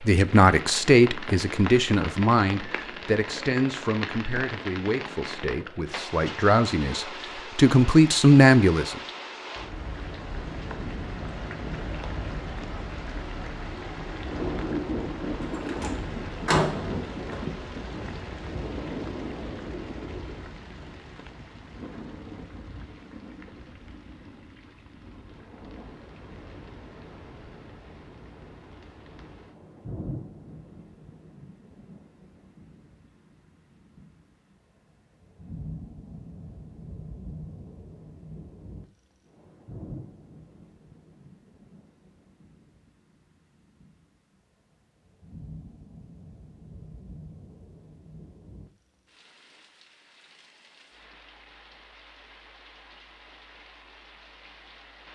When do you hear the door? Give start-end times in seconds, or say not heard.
15.4-17.4.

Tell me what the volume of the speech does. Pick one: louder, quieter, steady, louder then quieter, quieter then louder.
quieter then louder.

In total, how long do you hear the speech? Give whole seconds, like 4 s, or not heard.
9 s.